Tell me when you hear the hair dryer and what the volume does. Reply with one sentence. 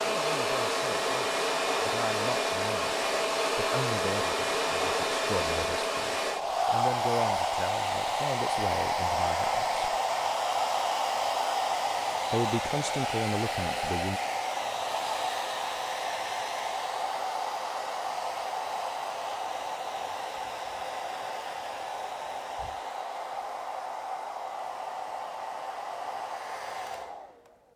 The hair dryer can be heard from 0.0 to 27.7 s, getting quieter.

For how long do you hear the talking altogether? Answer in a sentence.
The talking can be heard for 12 seconds in total.